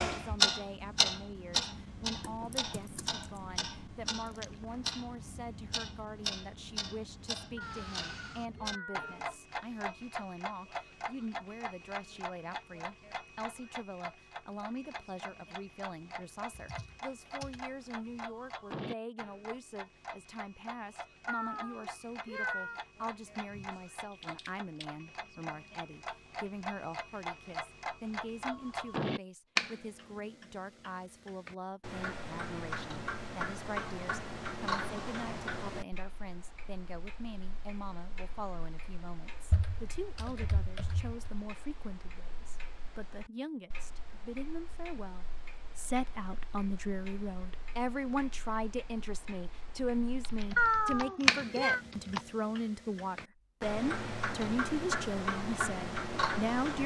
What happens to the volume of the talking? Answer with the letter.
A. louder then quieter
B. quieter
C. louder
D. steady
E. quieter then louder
C.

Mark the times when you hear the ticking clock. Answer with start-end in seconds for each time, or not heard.
0.0-56.8.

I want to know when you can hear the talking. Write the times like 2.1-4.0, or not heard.
0.1-56.8.